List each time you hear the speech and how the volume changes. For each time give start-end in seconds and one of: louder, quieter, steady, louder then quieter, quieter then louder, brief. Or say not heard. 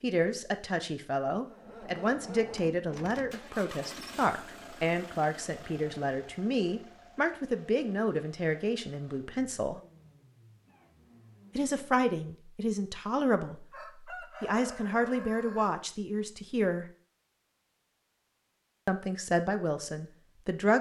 0.0-9.8 steady
11.6-13.7 brief
14.4-16.9 brief
18.9-20.7 brief.